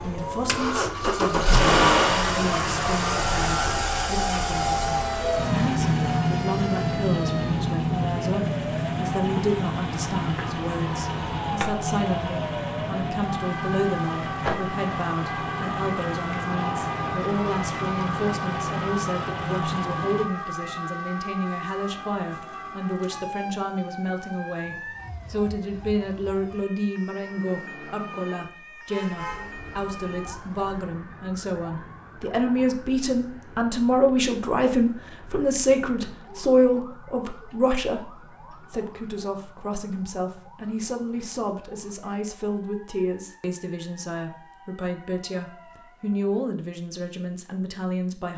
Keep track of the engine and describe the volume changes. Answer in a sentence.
The loudness of the engine goes down.